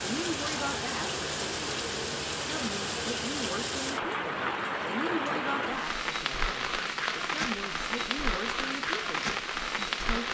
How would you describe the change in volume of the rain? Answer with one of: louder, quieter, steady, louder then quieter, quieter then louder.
steady.